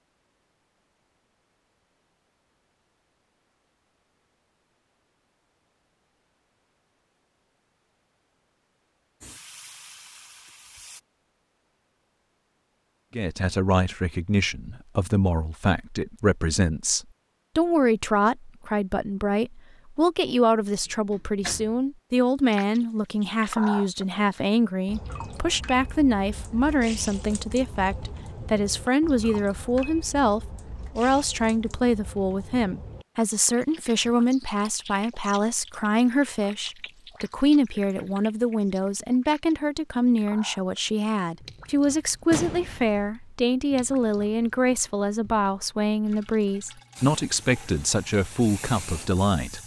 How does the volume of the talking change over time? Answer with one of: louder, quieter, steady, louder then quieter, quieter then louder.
steady.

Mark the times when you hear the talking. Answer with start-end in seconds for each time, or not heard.
13.2-49.6.